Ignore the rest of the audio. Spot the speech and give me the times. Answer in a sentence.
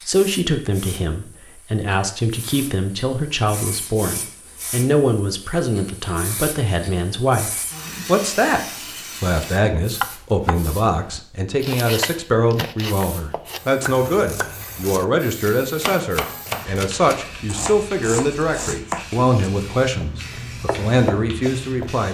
You can hear the speech from 0.1 to 22.0 s.